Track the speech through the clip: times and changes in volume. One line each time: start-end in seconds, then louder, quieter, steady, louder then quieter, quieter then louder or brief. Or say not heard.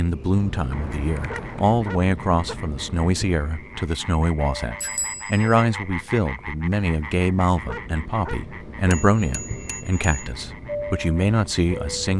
0.0-12.1 steady.